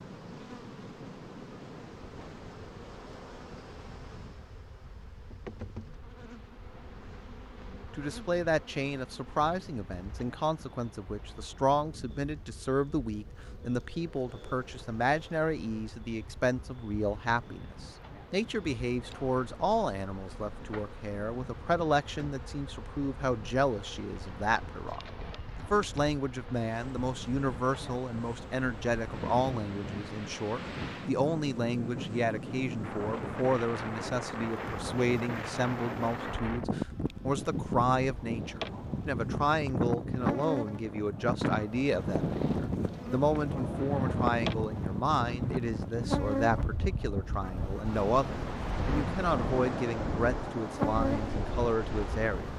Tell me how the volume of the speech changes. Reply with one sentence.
The volume of the speech stays about the same.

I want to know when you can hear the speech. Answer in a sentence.
The speech can be heard from 8.0 to 52.5 s.